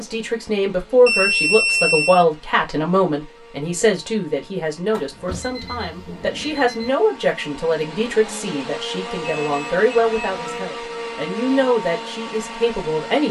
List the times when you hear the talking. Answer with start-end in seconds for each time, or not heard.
0.0-13.2.